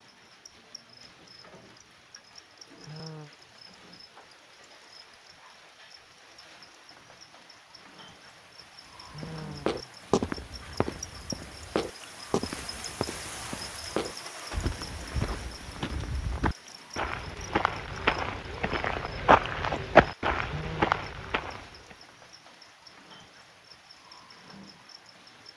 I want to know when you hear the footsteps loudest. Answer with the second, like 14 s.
20 s.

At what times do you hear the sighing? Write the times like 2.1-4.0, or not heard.
2.8-3.3, 9.1-10.1, 20.4-21.0.